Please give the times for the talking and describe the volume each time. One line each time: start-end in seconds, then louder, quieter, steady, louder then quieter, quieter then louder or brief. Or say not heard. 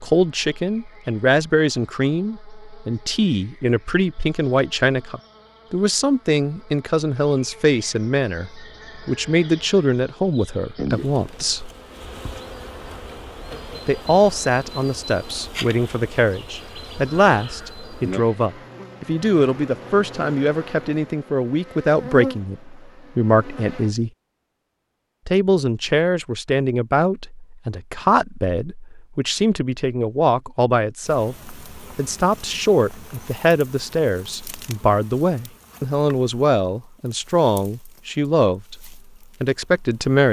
0.0-11.7 steady
13.8-24.1 steady
25.2-40.2 steady.